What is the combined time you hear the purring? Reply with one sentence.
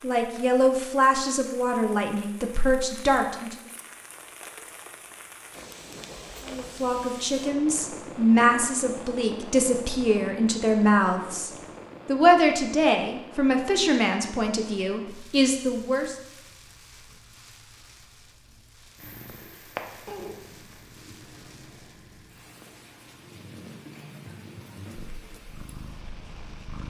The purring can be heard for 8 seconds in total.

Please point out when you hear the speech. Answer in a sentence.
You can hear the speech from 0.0 to 3.5 s and from 6.5 to 16.1 s.